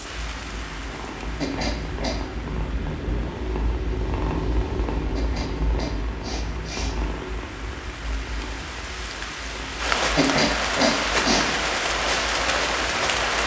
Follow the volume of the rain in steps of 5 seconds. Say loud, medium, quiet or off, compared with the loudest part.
quiet, medium, loud.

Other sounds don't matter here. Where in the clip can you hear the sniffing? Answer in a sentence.
The sniffing can be heard from 1.4 to 2.2 s, from 5.2 to 7.0 s and from 10.2 to 11.4 s.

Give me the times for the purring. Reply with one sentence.
The purring can be heard from 0.0 to 13.4 s.